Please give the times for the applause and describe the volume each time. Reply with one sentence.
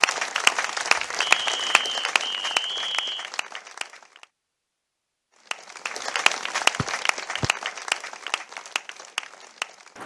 The applause can be heard from 0.0 to 4.2 s, getting quieter; and from 5.5 to 10.0 s, getting quieter.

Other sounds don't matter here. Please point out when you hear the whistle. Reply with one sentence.
You can hear the whistle from 1.2 to 3.3 s and from 6.8 to 7.5 s.